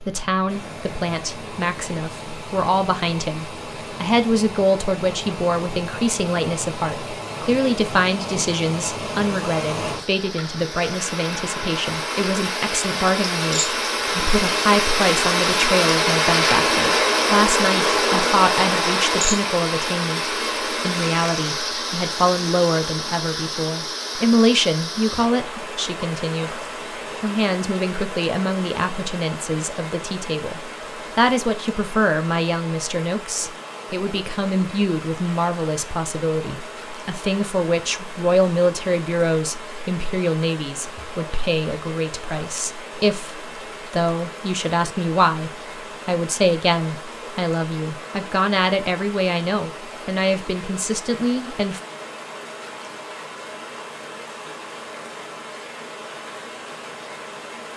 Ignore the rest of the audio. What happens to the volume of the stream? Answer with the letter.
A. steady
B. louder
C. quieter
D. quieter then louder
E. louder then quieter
E.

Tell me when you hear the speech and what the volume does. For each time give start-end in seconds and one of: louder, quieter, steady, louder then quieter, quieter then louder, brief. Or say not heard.
0.0-26.6 steady
27.2-51.8 steady.